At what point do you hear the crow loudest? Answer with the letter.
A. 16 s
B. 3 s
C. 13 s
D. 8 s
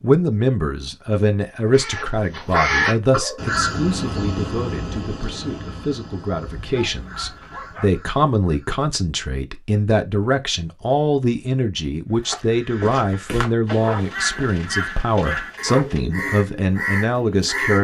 B.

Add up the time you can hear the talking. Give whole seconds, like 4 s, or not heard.
18 s.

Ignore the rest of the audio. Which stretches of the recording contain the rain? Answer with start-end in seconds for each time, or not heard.
not heard.